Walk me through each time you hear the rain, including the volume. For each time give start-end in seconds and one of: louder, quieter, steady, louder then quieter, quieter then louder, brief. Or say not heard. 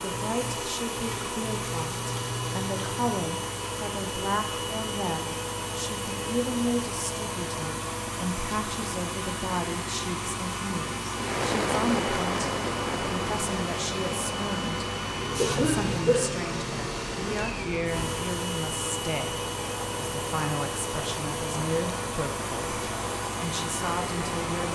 11.2-24.7 quieter.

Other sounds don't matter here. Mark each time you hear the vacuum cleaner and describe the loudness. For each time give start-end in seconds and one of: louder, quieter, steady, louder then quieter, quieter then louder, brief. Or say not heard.
0.0-24.7 steady.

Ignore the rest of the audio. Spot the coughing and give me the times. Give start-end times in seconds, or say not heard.
15.3-16.2.